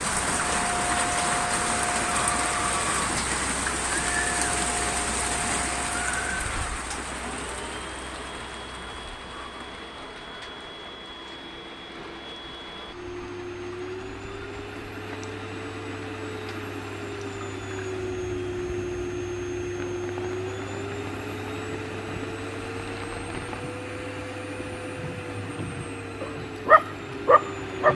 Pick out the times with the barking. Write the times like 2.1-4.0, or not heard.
26.2-27.8.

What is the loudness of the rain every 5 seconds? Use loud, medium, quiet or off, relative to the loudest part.
loud, medium, quiet, quiet, quiet, quiet.